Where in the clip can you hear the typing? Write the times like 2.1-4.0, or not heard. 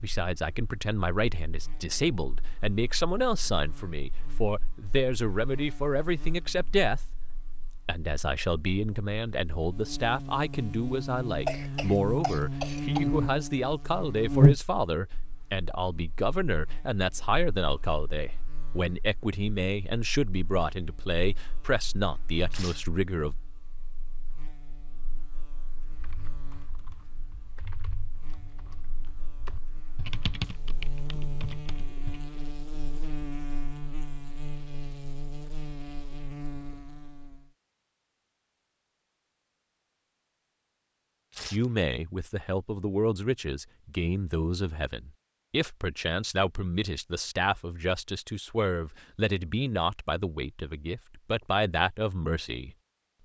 25.9-32.2.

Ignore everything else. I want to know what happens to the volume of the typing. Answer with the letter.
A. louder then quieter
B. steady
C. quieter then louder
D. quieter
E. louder
A.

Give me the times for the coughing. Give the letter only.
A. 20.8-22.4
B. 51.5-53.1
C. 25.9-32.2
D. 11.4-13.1
D.